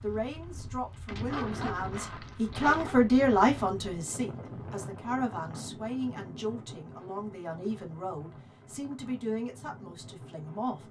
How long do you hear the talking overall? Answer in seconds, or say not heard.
11 s.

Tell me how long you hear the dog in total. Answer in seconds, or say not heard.
2 s.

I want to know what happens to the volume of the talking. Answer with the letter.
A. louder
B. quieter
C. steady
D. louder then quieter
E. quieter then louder
D.